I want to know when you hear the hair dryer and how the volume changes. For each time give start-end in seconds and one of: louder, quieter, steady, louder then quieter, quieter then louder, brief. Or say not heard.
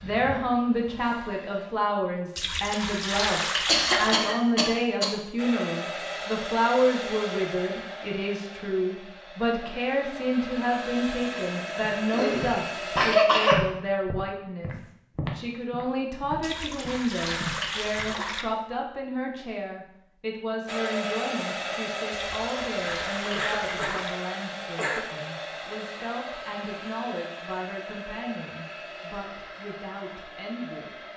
0.0-1.7 brief
5.3-13.2 quieter then louder
20.6-31.1 quieter.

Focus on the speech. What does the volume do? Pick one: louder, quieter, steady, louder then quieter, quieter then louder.
quieter.